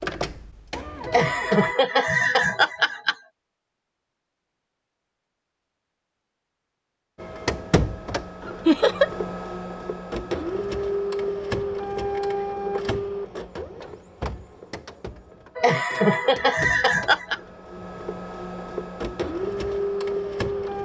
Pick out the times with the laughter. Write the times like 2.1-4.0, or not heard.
1.1-3.1, 8.7-9.1, 15.6-17.4.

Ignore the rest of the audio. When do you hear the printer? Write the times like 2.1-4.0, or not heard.
0.0-1.8, 7.2-20.8.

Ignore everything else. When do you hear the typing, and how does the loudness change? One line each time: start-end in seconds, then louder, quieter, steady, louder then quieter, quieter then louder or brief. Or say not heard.
not heard.